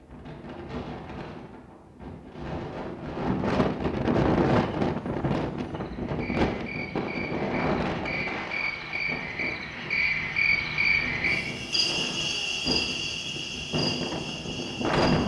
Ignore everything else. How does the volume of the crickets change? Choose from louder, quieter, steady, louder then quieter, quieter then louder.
louder then quieter.